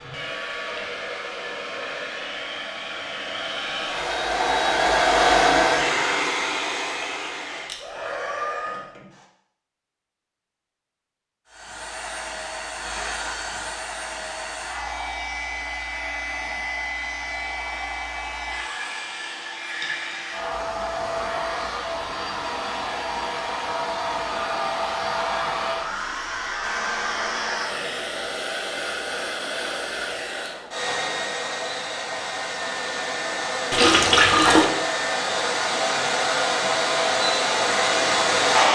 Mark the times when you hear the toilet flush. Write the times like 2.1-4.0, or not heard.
33.7-34.7.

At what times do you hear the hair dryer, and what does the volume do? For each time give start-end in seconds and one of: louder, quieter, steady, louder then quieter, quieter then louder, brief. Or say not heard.
0.0-9.2 louder then quieter
11.4-38.7 louder.